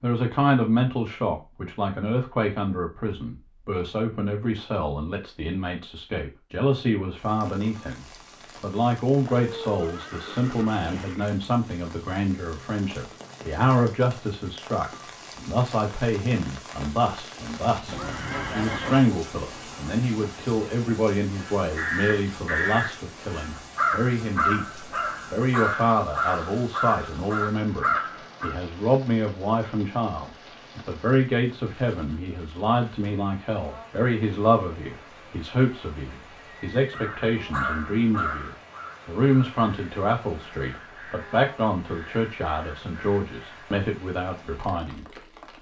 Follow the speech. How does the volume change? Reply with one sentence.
The loudness of the speech stays about the same.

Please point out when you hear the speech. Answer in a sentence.
You can hear the speech from 0.0 to 45.0 s.